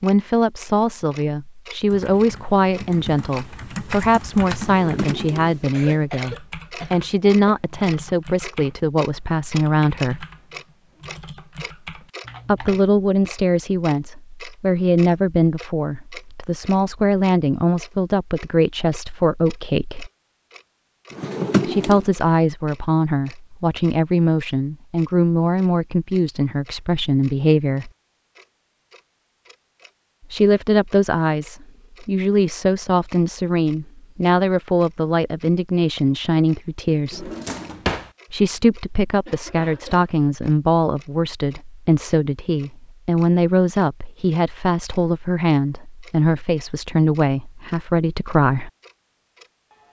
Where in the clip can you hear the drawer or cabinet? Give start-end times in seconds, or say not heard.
4.5-6.0, 21.1-22.1, 37.1-38.1.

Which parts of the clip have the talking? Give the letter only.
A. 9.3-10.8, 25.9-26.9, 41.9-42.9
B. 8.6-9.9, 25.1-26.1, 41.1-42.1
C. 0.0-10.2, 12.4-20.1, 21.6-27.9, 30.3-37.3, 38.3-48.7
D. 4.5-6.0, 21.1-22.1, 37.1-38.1
C.